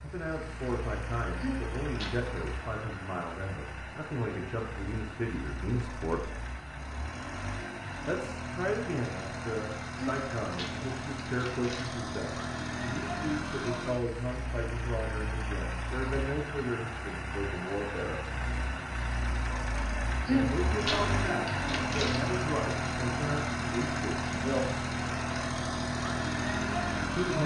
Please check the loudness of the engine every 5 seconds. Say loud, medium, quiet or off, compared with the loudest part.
medium, medium, medium, medium, loud, loud.